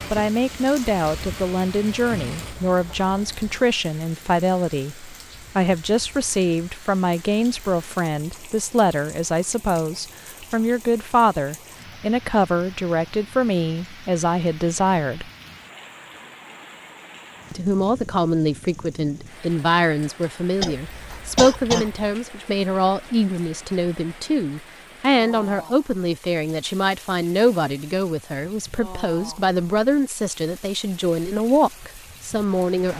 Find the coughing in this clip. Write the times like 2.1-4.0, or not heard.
20.6-22.1.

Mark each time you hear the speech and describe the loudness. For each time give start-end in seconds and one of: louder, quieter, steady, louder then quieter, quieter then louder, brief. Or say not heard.
0.1-15.3 steady
17.5-32.9 steady.